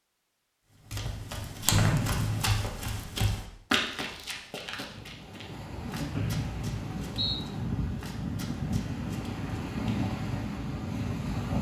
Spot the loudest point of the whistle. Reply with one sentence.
The loudest moment of the whistle is at 2 seconds.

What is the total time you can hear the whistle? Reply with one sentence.
The whistle can be heard for 2 seconds in total.